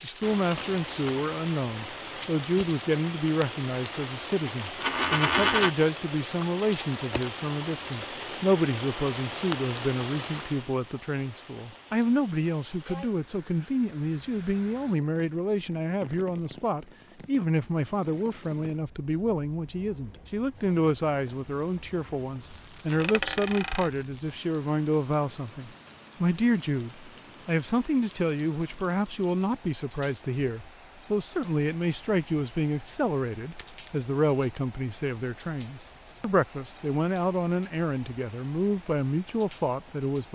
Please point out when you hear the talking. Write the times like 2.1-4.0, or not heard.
0.0-40.3.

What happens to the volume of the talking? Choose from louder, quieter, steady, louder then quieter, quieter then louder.
steady.